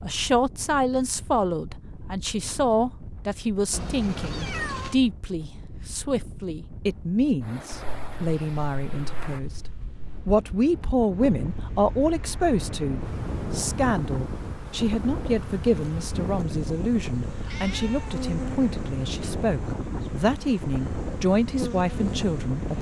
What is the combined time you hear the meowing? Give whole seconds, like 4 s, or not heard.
5 s.